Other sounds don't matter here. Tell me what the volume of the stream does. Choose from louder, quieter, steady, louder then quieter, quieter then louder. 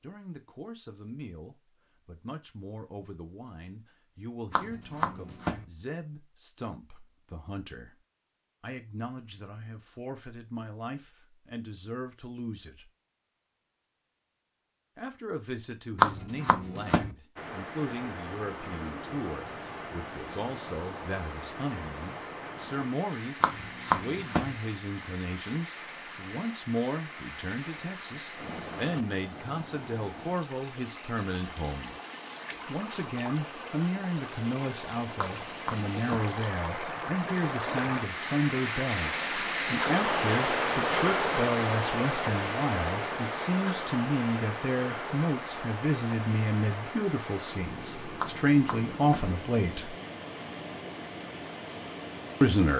louder then quieter.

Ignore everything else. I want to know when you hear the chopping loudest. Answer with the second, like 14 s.
16 s.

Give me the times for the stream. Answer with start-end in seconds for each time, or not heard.
17.4-52.7.